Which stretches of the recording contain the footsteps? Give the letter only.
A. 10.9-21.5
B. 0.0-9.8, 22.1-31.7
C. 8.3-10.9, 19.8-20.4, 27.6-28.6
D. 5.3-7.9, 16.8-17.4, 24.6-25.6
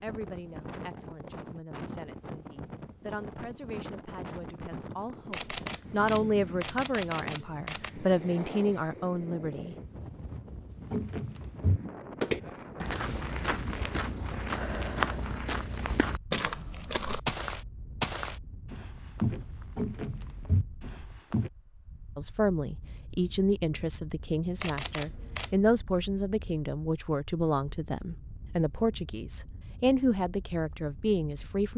A.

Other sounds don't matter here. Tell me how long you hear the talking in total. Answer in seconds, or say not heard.
19 s.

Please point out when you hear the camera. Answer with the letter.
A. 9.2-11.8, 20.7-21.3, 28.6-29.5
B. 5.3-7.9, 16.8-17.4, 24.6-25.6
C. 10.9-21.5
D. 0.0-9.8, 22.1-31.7
B.